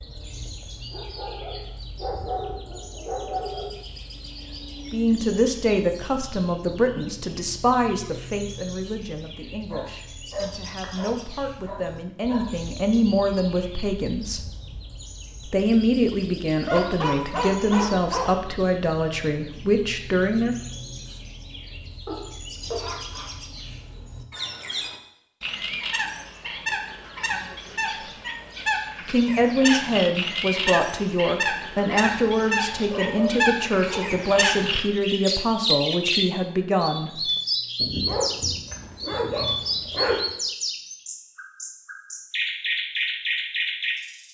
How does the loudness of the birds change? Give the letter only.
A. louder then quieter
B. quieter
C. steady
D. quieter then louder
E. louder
E.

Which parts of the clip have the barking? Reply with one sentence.
The barking can be heard from 0.9 to 3.8 s, from 9.7 to 12.4 s, from 16.6 to 18.4 s, from 22.1 to 23.3 s, from 32.7 to 34.2 s and from 37.8 to 40.2 s.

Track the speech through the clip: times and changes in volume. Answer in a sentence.
The speech can be heard from 4.9 to 14.4 s, getting quieter then louder; from 15.4 to 20.6 s, at a steady volume; and from 29.1 to 37.2 s, at a steady volume.